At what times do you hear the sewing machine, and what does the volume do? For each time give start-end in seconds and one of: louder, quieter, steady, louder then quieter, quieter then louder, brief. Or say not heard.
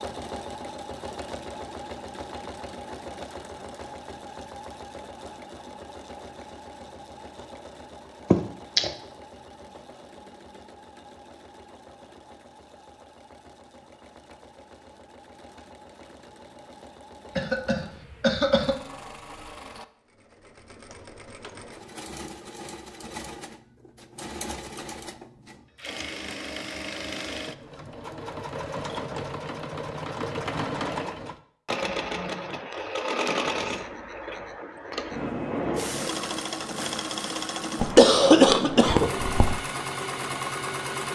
0.0-41.1 quieter then louder.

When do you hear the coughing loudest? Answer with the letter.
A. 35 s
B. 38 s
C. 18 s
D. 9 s
B.